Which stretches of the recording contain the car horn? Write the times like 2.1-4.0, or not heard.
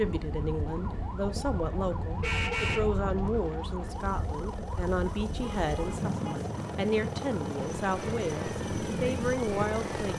2.2-2.9, 5.4-6.3.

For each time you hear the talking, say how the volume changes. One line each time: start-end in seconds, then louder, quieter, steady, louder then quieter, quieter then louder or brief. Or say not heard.
0.0-10.1 steady.